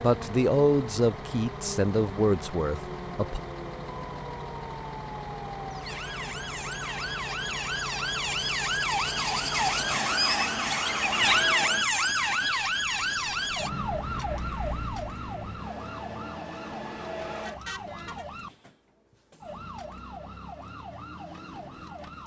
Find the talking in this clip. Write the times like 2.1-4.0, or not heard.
0.0-3.4.